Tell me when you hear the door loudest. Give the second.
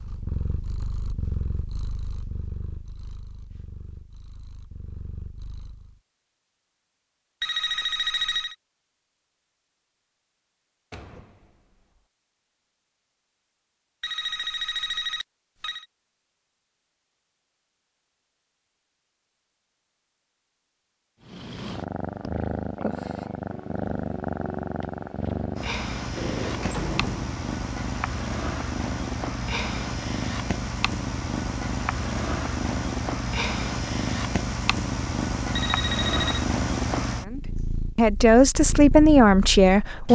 27 s.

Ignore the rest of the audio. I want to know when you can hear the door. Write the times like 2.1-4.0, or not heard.
10.9-11.6, 26.1-27.4.